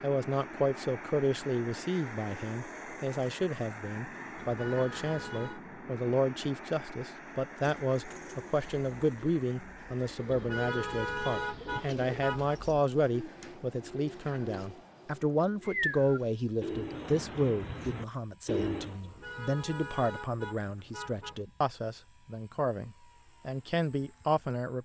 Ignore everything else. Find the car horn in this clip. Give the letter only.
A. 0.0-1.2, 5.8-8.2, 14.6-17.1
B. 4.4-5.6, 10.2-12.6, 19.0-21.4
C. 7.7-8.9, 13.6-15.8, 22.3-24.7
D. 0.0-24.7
B.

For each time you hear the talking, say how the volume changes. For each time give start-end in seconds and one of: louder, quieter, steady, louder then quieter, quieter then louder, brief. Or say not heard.
0.0-24.7 steady.